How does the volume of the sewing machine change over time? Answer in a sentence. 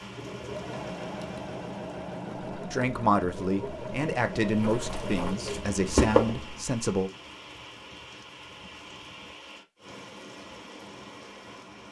The volume of the sewing machine stays about the same.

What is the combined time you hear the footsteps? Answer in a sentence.
The footsteps can be heard for 2 seconds in total.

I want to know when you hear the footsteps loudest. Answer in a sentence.
The loudest moment of the footsteps is at 6 seconds.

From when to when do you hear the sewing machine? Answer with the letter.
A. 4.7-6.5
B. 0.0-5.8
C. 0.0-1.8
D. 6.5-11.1
B.